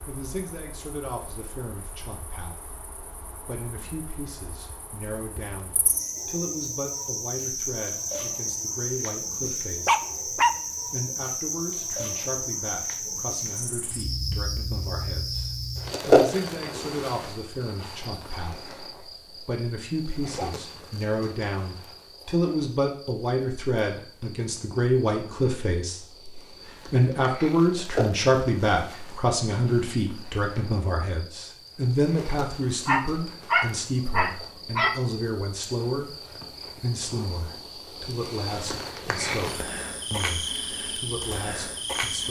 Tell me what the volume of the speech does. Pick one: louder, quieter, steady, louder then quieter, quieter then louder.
louder then quieter.